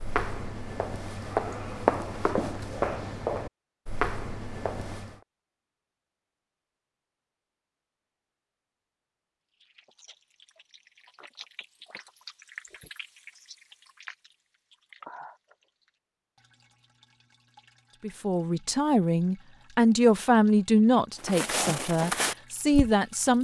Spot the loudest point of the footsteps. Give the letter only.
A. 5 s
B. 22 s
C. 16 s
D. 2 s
D.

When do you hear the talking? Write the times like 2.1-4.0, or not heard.
18.0-23.3.